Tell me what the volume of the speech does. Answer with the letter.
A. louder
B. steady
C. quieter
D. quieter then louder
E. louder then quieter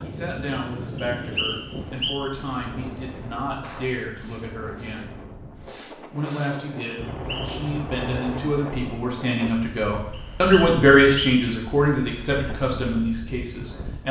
E.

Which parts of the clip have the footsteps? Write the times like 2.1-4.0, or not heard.
not heard.